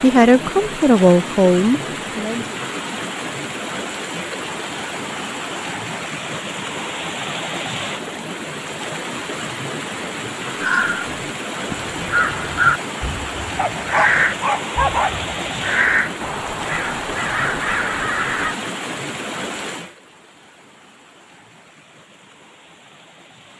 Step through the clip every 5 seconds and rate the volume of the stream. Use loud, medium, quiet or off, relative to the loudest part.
loud, loud, loud, loud, quiet.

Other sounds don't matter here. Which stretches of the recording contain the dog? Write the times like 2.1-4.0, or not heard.
13.6-15.2.